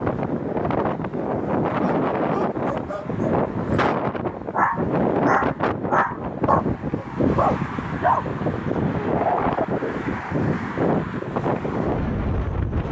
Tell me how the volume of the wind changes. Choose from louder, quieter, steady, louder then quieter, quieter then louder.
steady.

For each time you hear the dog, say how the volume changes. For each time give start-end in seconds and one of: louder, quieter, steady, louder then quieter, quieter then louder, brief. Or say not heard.
1.8-8.3 louder.